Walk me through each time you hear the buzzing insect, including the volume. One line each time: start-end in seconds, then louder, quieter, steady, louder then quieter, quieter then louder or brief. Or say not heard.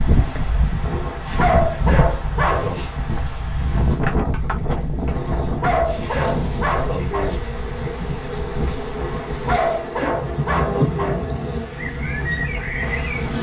0.0-13.3 louder.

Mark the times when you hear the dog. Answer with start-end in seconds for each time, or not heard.
0.8-2.9, 5.0-7.4, 8.9-11.2.